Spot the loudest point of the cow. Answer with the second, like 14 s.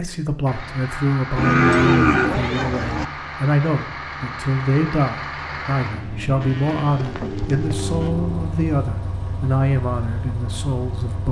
2 s.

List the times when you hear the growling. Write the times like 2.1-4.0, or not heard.
7.0-8.6.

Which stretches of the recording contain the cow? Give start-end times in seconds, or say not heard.
1.4-3.0, 6.4-8.1.